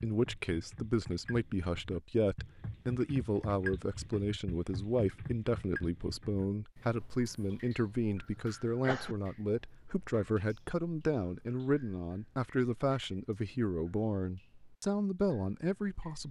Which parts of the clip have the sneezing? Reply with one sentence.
You can hear the sneezing from 8.3 to 9.2 s.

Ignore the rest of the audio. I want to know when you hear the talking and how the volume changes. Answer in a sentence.
You can hear the talking from 0.0 to 16.2 s, at a steady volume.